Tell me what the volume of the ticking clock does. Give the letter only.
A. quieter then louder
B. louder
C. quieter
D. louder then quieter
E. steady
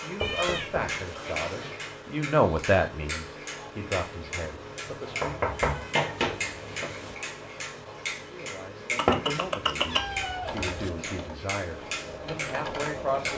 E.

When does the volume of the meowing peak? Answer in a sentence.
The loudest moment of the meowing is at 10 seconds.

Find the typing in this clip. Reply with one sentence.
You can hear the typing from 10.4 to 13.3 s.